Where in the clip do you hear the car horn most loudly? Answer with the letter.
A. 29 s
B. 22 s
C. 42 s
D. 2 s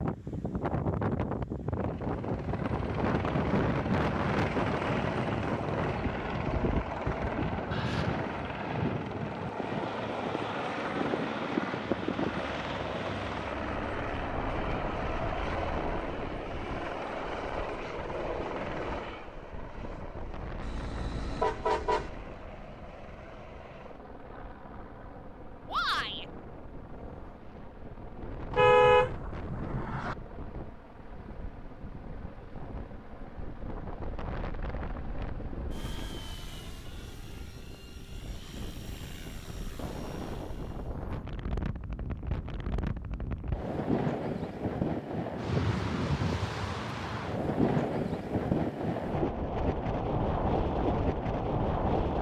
A.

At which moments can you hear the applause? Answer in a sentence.
The applause can't be heard in this clip.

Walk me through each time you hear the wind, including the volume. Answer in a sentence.
The wind can be heard from 0.0 to 52.1 s, getting quieter then louder.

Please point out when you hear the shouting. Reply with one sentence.
The shouting can be heard from 25.6 to 26.2 s.